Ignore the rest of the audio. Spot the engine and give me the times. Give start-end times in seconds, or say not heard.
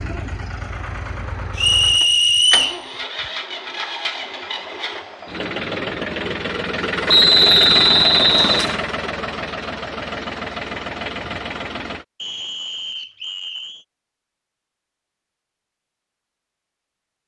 0.0-12.1.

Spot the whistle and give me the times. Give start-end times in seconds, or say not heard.
1.6-2.8, 7.0-8.8, 12.2-13.8.